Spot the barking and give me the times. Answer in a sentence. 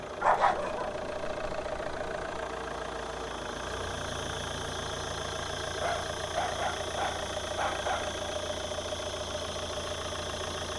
You can hear the barking from 0.2 to 2.2 s and from 5.8 to 8.2 s.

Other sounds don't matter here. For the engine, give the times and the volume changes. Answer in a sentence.
The engine can be heard from 0.0 to 10.7 s, at a steady volume.